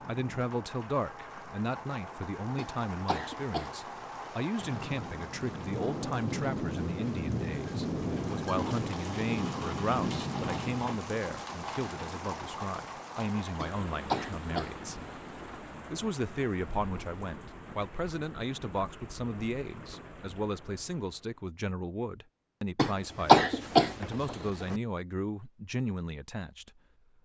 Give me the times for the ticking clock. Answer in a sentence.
You can't hear the ticking clock here.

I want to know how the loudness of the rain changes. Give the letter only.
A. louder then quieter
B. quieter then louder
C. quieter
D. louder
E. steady
A.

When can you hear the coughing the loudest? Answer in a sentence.
The volume of the coughing peaks at 23 seconds.